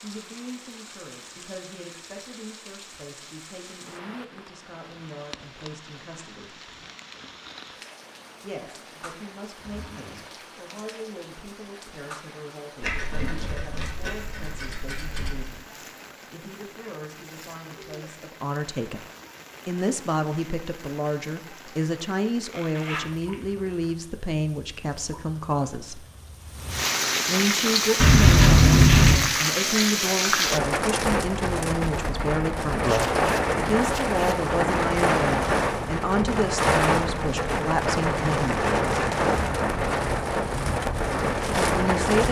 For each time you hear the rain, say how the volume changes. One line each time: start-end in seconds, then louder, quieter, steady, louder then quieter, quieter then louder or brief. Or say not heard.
0.0-42.2 louder.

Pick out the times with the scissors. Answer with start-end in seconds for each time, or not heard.
12.8-15.5, 27.9-29.2.